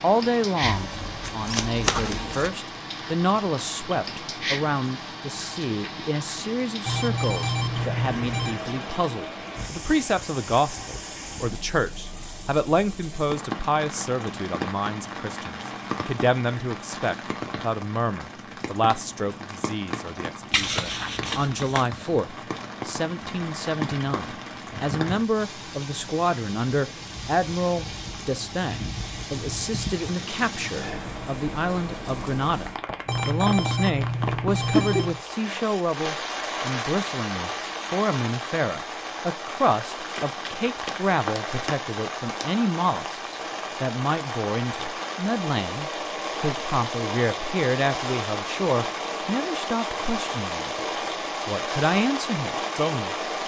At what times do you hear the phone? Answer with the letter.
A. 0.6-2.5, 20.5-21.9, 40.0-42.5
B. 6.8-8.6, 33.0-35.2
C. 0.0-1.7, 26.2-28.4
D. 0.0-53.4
B.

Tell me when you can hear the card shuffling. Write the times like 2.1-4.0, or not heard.
0.6-2.5, 20.5-21.9, 40.0-42.5.